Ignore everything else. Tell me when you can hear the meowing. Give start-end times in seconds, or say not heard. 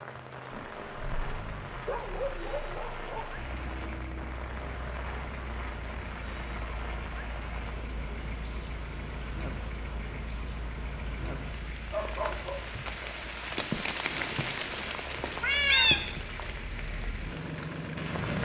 13.7-14.5, 15.4-16.2.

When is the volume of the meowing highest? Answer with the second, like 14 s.
16 s.